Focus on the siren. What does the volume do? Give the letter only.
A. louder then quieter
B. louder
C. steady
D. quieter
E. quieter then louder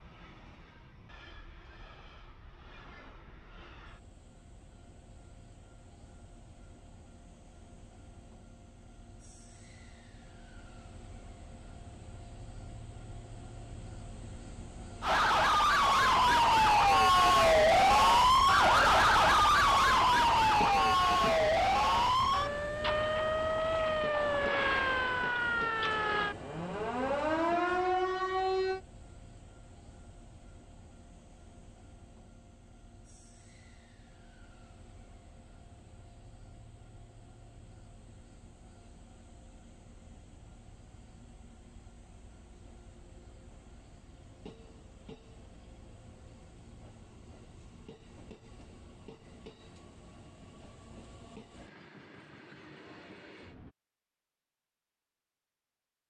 D.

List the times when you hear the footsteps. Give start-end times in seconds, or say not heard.
not heard.